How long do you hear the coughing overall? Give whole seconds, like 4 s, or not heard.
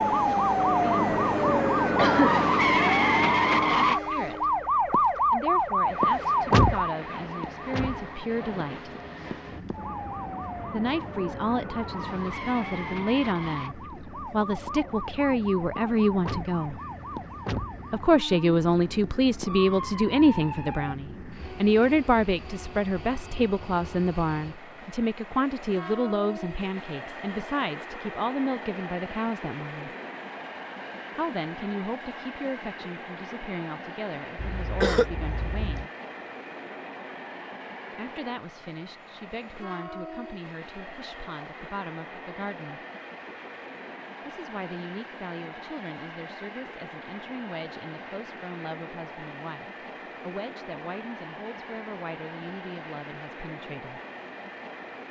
2 s.